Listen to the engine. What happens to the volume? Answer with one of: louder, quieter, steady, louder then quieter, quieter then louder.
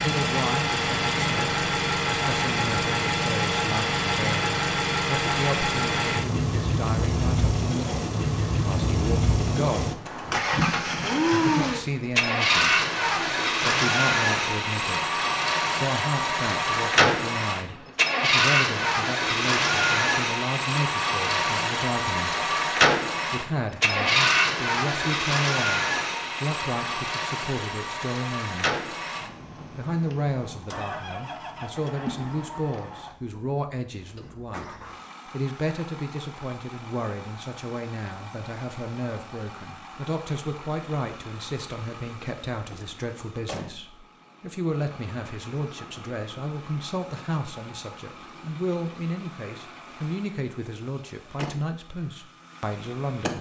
quieter.